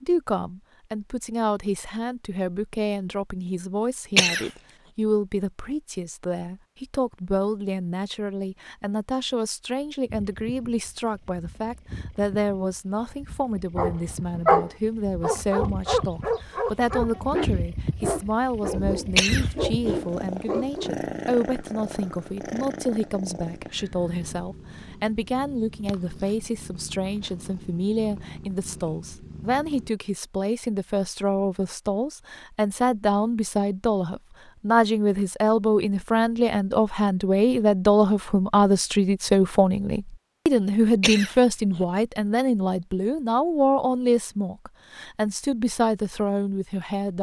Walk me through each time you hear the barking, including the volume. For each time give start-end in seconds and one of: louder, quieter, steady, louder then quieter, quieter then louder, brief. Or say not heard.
13.8-20.9 quieter.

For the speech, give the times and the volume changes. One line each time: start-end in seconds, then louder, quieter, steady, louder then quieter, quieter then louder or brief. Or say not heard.
0.0-47.1 louder.